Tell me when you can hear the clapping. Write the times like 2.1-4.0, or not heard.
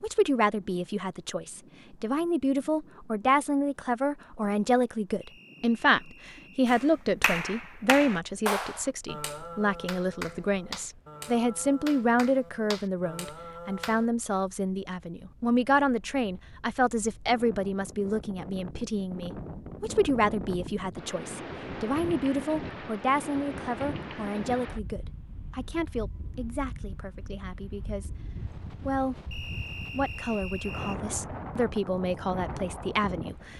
6.7-14.1.